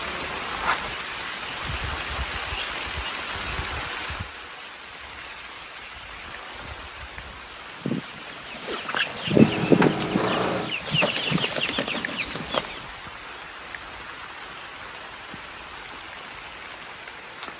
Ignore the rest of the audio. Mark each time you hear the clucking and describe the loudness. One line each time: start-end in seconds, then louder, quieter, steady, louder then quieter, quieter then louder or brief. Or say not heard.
7.5-12.8 louder then quieter.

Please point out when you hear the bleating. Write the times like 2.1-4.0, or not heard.
not heard.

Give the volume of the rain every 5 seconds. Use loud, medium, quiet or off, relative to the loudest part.
loud, medium, medium, medium.